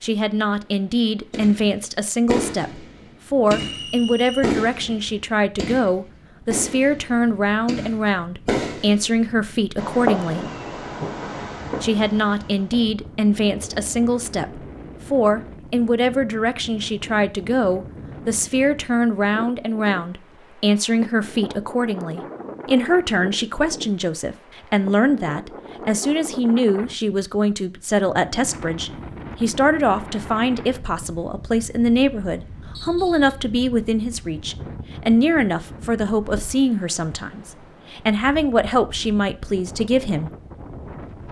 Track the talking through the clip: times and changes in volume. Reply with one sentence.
You can hear the talking from 0.0 to 10.4 s, at a steady volume; and from 11.8 to 40.3 s, at a steady volume.